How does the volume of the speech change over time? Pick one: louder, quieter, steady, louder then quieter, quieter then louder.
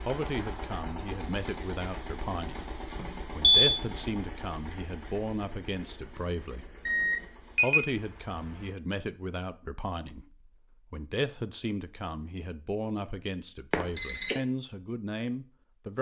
steady.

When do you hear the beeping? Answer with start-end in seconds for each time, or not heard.
3.0-3.8, 6.8-7.9, 13.7-14.3.